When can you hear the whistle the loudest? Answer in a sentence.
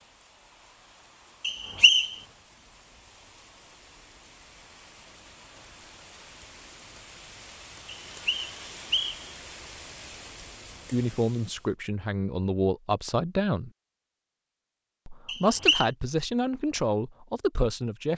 The loudest moment of the whistle is at 2 seconds.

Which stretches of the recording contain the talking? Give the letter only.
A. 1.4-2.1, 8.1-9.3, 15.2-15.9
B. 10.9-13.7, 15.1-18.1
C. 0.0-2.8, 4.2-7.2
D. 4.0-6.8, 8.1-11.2
B.